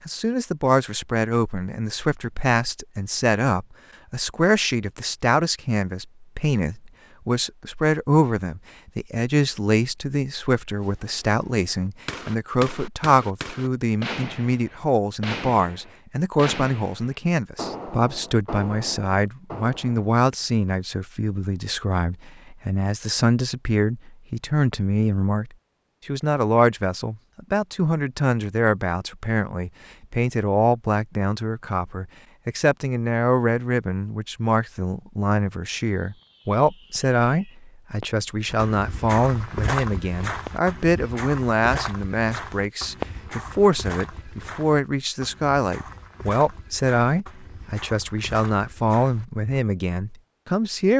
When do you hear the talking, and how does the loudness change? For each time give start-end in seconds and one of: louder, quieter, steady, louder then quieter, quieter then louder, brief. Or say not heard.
0.1-50.9 steady.